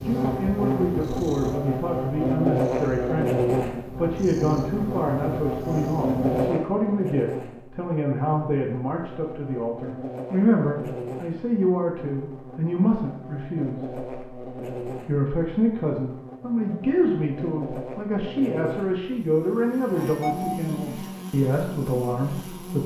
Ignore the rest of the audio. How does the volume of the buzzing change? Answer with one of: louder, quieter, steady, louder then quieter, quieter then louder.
quieter.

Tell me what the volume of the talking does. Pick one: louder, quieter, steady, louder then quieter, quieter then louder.
steady.